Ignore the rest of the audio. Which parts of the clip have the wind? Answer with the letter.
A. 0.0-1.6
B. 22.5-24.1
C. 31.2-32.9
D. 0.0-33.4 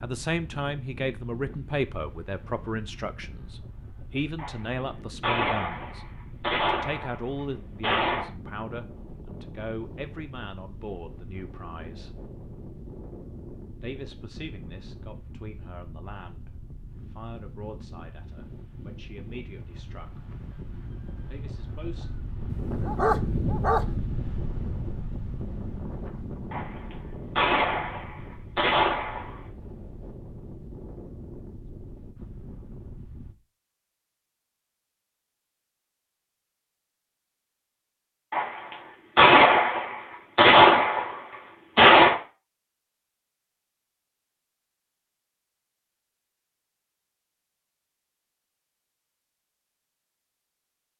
D.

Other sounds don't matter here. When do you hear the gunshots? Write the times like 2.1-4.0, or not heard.
4.3-8.3, 26.5-29.4, 38.3-42.2.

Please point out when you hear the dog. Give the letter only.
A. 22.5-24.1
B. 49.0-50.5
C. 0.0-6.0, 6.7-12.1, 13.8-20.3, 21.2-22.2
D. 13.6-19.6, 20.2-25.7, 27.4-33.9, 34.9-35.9
A.